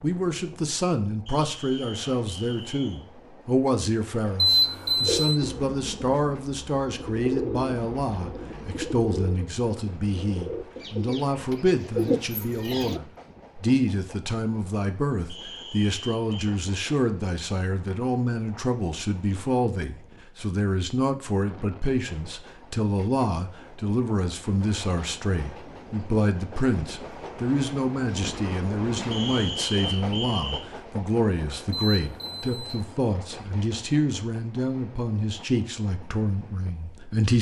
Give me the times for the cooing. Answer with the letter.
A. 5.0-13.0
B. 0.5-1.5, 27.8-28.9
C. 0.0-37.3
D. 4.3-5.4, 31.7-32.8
A.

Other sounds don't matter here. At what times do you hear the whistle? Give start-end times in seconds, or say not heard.
1.2-3.0, 15.2-16.6, 29.1-30.6.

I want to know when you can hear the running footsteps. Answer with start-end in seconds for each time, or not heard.
not heard.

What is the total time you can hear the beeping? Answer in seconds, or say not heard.
2 s.